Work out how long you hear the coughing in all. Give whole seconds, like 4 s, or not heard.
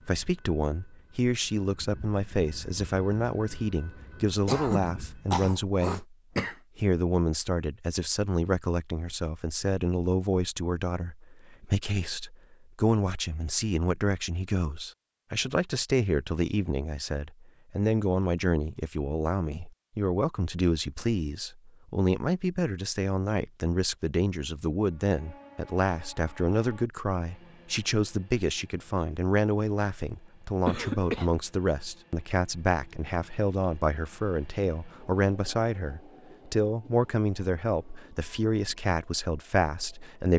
3 s.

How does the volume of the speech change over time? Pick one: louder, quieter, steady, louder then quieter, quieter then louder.
steady.